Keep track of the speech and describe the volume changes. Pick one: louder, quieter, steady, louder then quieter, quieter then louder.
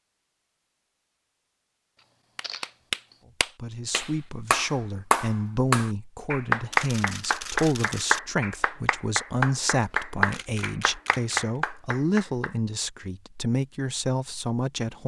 steady.